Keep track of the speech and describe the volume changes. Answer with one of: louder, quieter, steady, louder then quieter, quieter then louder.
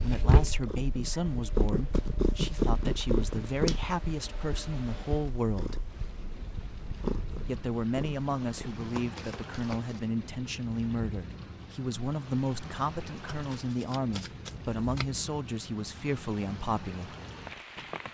steady.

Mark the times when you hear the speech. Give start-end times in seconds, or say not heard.
0.0-5.8, 7.5-17.1.